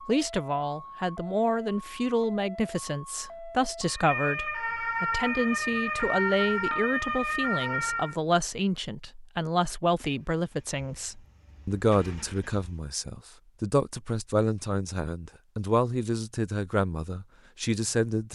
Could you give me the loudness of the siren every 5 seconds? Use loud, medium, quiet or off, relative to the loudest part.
medium, loud, off, off.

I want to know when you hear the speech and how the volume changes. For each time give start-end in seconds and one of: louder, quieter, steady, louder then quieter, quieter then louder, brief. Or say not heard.
0.1-18.2 steady.